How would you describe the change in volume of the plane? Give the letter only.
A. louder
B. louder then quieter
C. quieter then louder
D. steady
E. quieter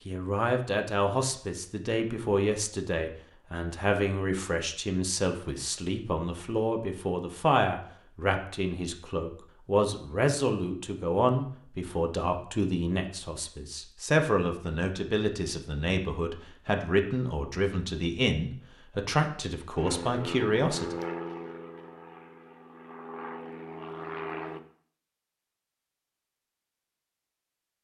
C.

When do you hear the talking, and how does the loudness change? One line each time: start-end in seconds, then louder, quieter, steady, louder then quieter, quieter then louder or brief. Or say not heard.
0.1-20.9 steady.